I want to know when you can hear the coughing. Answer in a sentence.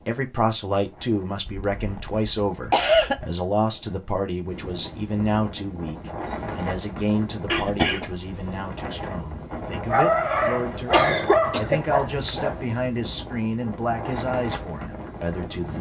You can hear the coughing from 1.4 to 3.2 s, from 7.5 to 8.9 s and from 10.9 to 12.7 s.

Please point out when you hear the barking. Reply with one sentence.
The barking can be heard from 9.8 to 12.6 s.